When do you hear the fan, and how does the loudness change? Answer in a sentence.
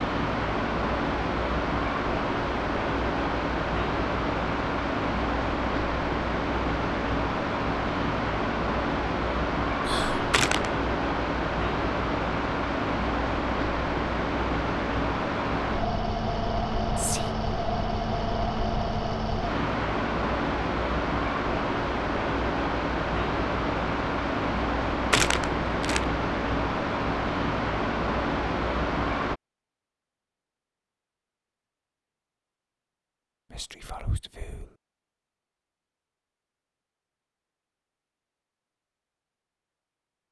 The fan can be heard from 0.0 to 29.4 s, at a steady volume.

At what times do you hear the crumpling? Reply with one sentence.
The crumpling can be heard from 10.3 to 10.8 s and from 25.1 to 26.1 s.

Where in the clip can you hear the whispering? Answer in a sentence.
The whispering can be heard from 9.8 to 10.3 s, from 16.9 to 17.4 s and from 33.5 to 34.7 s.